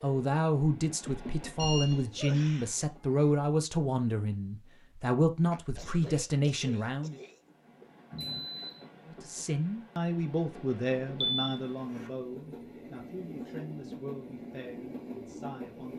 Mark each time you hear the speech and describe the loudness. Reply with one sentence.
You can hear the speech from 0.0 to 7.2 s, at a steady volume; and from 9.1 to 15.9 s, getting quieter.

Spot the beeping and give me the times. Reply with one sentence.
You can hear the beeping from 1.6 to 2.3 s, from 8.1 to 8.8 s and from 11.2 to 12.1 s.